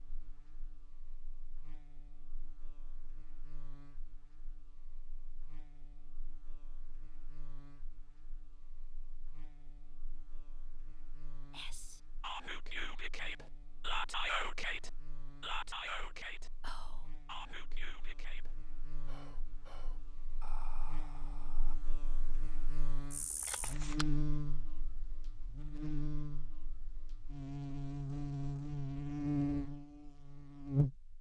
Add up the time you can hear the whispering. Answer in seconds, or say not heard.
10 s.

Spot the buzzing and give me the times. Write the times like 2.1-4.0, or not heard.
0.0-31.1.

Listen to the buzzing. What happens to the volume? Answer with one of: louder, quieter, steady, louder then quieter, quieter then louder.
louder.